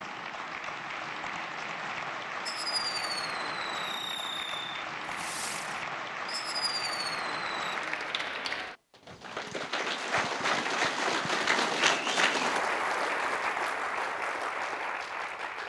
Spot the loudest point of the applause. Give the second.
12 s.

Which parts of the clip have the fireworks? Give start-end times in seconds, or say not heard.
2.5-7.8.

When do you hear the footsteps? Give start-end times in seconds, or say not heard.
not heard.